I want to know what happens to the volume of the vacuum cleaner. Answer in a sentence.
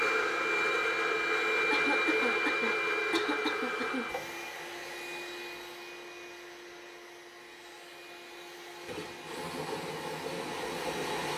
The volume of the vacuum cleaner goes down, then up.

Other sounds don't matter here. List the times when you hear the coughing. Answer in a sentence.
The coughing can be heard from 1.7 to 4.0 s.